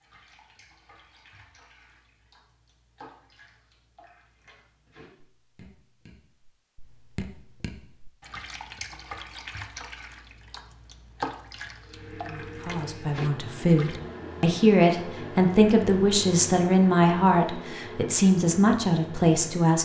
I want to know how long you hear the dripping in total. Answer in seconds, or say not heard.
14 s.